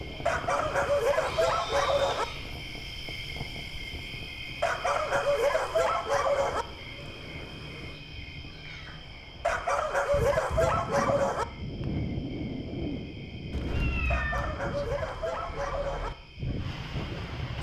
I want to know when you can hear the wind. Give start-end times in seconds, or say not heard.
0.0-17.5.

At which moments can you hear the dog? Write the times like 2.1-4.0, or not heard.
0.2-2.2, 4.6-6.7, 9.4-11.4, 14.1-16.1.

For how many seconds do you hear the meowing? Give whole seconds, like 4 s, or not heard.
4 s.